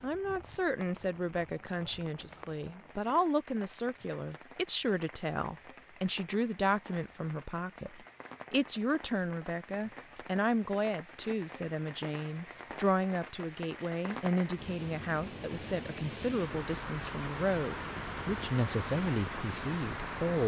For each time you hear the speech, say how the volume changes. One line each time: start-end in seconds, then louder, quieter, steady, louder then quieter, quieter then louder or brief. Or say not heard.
0.0-20.4 steady.